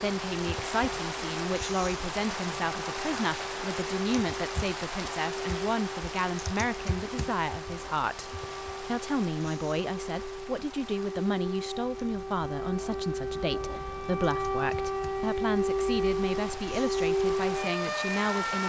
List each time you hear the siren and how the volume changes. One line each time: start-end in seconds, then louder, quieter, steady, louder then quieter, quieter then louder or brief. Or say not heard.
0.0-18.6 louder.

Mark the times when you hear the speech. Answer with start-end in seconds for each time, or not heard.
0.0-18.6.